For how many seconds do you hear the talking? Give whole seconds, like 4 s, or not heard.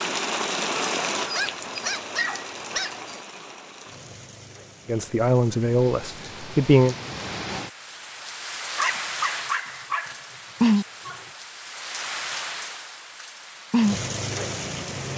2 s.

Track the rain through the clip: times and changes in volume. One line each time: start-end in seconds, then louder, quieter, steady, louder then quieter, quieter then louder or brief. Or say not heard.
0.0-15.1 quieter then louder.